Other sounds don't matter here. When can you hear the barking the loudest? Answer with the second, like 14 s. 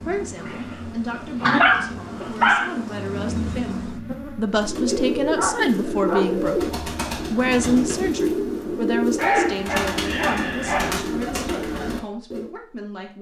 2 s.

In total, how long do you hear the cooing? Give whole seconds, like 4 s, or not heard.
8 s.